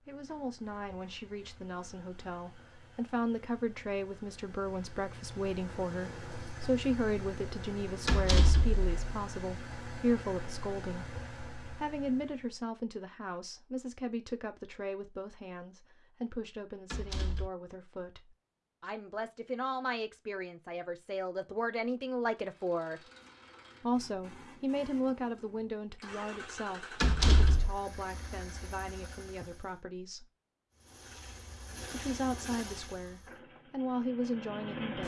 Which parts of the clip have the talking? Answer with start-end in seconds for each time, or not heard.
0.1-23.0, 23.8-30.3, 31.9-35.0.